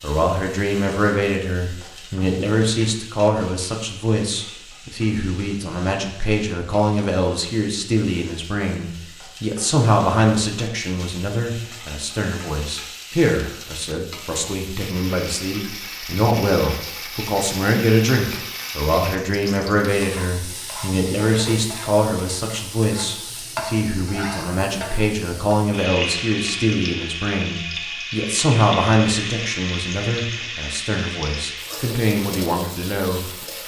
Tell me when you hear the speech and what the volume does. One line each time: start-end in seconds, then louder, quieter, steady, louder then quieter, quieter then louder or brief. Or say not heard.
0.0-33.2 steady.